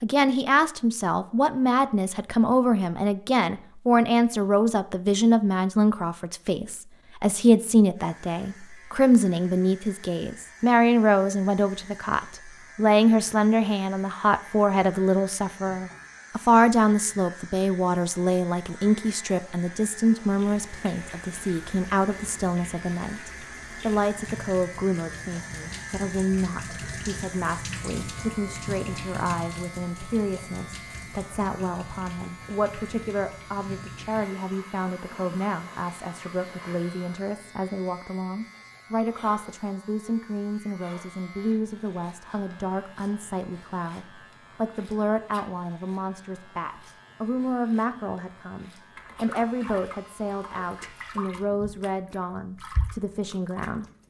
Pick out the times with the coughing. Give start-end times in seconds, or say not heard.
not heard.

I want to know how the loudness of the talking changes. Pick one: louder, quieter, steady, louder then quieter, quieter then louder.
quieter.